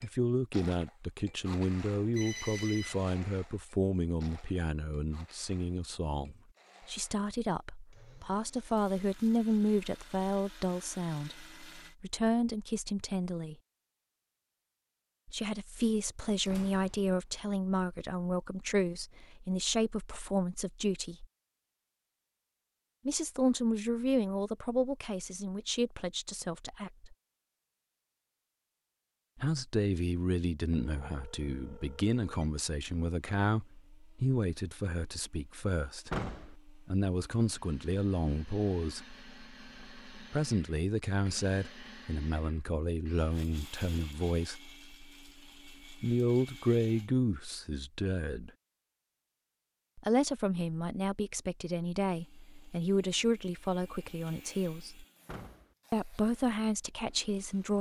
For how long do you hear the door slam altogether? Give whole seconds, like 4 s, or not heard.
2 s.